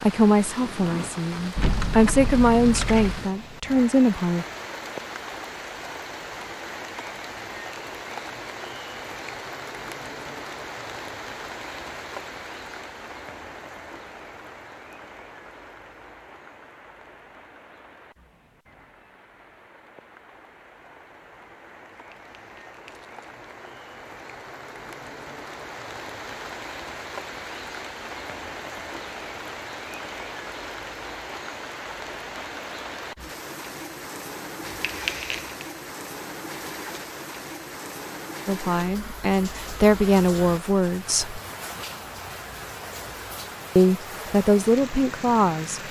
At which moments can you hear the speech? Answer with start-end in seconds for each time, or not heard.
0.0-4.5, 38.5-41.4, 43.8-45.8.